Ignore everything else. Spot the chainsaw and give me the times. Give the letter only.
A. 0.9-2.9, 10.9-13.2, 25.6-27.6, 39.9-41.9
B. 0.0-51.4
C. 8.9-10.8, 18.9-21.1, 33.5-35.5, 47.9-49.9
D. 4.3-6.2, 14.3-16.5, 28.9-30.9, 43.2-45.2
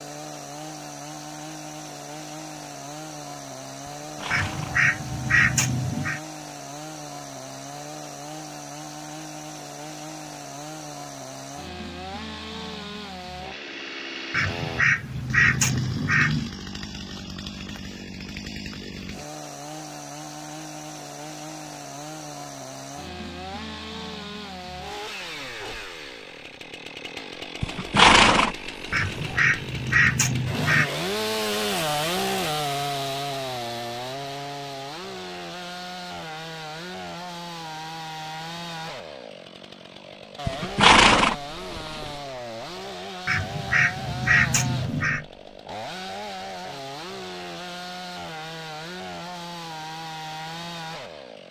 B.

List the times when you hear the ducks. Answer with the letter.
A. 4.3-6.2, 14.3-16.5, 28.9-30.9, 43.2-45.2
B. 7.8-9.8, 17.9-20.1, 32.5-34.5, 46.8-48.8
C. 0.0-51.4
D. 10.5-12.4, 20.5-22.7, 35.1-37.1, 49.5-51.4
A.